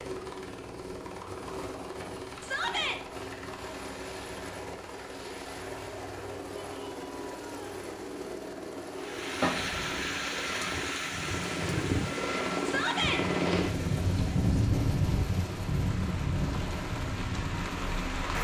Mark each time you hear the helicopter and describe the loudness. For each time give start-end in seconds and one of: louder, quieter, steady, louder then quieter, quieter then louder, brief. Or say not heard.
0.0-18.4 louder.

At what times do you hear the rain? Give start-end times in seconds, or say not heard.
9.0-18.4.